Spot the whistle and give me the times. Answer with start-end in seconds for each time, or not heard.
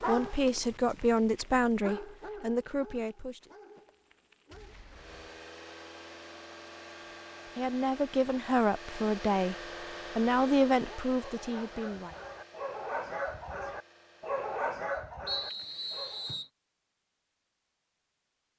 15.2-16.5.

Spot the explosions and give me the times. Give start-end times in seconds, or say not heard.
4.5-5.3.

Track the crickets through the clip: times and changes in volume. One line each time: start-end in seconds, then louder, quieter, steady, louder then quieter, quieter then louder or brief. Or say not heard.
not heard.